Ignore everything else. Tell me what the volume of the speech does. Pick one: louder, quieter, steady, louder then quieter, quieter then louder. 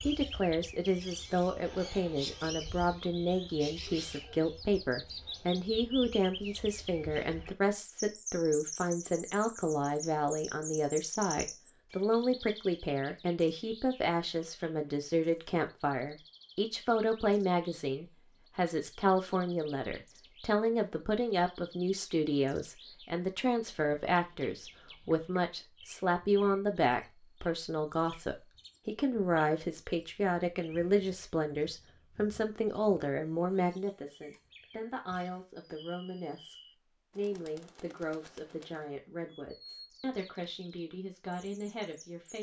quieter.